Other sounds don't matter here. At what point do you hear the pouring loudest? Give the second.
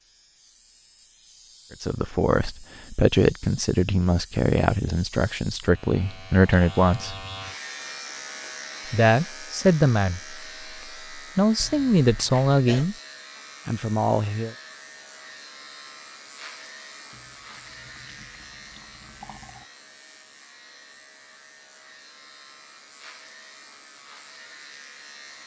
19 s.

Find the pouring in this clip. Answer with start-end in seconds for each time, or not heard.
17.1-19.7.